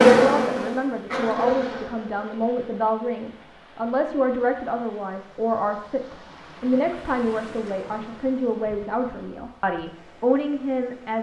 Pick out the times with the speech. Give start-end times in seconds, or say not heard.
0.1-11.1.